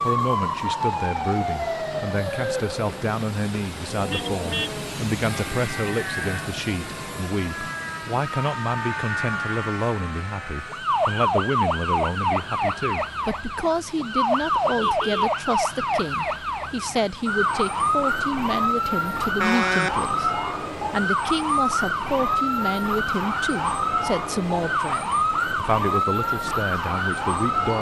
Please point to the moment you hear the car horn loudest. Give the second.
20 s.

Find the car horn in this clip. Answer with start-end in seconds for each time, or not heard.
4.0-4.8, 14.7-15.3, 19.4-20.0.